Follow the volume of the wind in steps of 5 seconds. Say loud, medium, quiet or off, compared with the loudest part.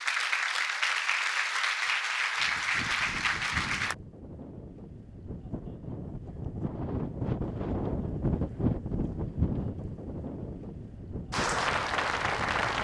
medium, loud, medium.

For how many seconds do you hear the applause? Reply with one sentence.
You can hear the applause for 5 seconds altogether.